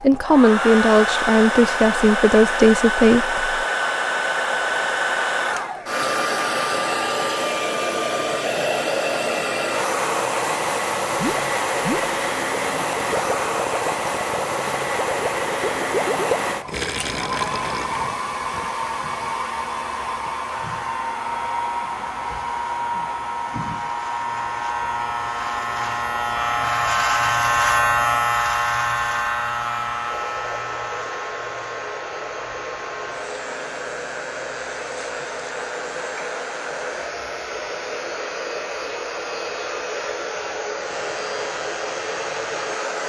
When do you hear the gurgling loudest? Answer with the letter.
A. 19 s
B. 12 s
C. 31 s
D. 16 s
D.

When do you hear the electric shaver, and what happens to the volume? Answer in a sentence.
The electric shaver can be heard from 20.5 to 43.0 s, getting louder then quieter.